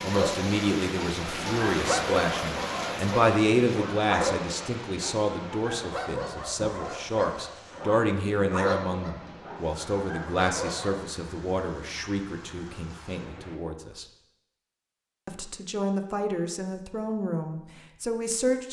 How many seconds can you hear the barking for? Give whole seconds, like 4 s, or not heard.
11 s.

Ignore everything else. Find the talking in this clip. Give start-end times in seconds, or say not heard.
0.0-14.1, 15.2-18.6.